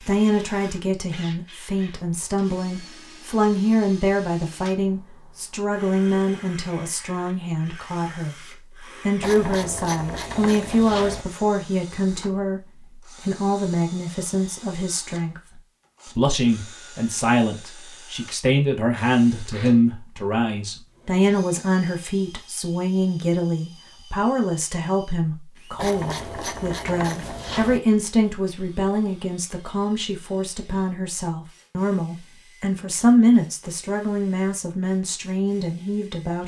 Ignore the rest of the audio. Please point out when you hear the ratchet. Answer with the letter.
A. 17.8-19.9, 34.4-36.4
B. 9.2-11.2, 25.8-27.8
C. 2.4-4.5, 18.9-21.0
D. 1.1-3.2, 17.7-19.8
B.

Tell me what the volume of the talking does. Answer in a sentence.
The volume of the talking stays about the same.